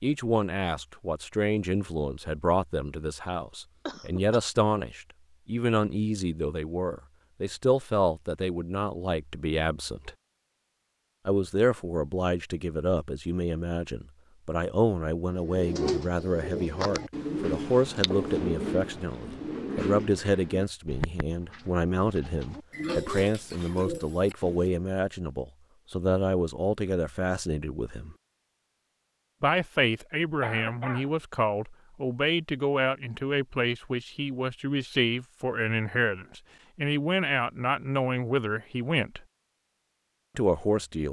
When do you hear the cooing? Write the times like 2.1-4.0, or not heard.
15.3-24.9.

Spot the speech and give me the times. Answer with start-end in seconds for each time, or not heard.
0.0-10.1, 11.2-28.1, 29.4-39.2, 40.4-41.0.